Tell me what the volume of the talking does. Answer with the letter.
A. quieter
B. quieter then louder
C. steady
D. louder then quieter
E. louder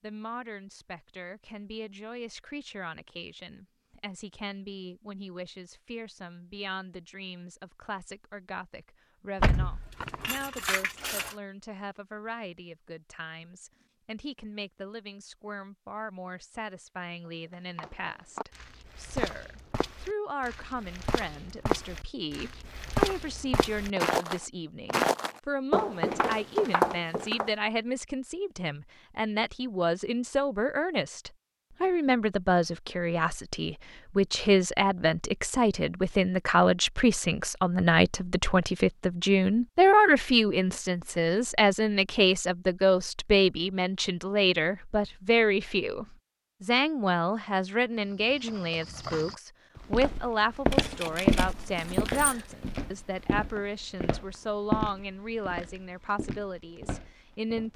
D.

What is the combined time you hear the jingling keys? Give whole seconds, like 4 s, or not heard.
4 s.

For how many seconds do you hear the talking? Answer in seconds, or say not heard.
58 s.